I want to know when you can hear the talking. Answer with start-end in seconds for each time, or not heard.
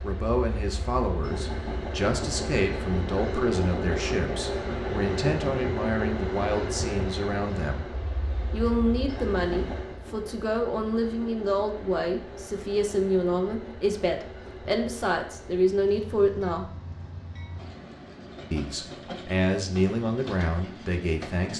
0.0-7.8, 8.5-16.7, 18.5-21.5.